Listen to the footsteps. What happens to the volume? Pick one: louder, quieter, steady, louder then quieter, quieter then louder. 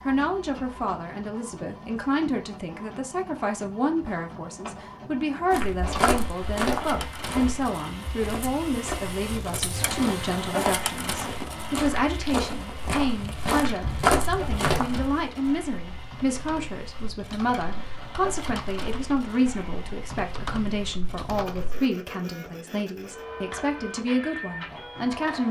quieter then louder.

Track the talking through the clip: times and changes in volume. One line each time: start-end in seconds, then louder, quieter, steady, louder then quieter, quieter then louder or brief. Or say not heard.
0.1-25.4 steady.